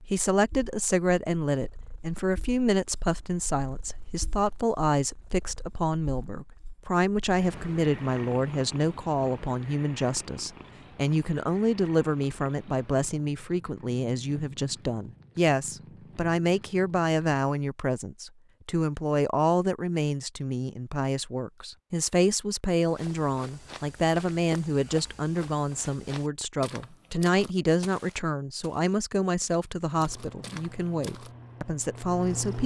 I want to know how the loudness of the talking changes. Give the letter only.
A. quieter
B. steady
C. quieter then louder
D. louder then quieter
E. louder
B.